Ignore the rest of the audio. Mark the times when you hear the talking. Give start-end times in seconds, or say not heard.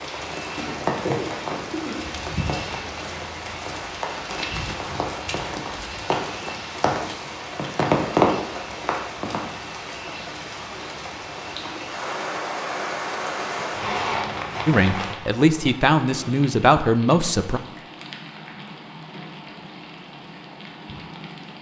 14.7-17.6.